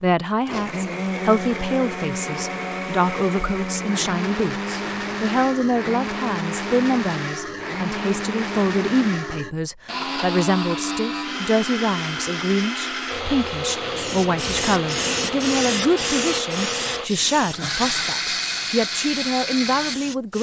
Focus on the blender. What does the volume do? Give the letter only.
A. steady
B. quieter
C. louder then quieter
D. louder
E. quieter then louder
A.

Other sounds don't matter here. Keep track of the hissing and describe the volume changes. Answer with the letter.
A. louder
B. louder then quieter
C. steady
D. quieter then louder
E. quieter
E.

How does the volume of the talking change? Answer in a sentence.
The volume of the talking stays about the same.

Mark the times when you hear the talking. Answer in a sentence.
You can hear the talking from 0.0 to 20.3 s.